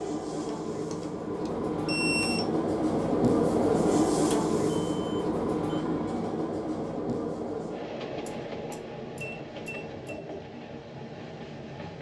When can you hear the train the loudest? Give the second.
4 s.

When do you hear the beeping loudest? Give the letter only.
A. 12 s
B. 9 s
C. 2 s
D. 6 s
C.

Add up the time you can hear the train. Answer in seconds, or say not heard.
12 s.